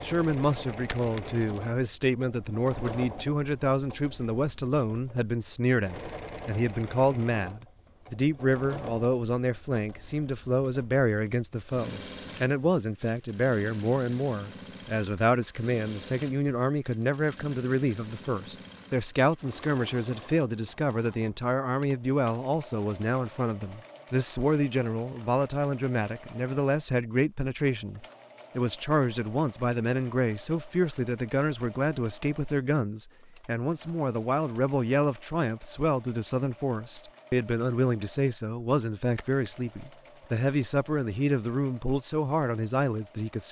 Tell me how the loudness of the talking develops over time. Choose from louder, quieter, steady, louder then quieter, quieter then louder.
steady.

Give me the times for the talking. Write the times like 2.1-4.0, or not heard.
0.0-43.4.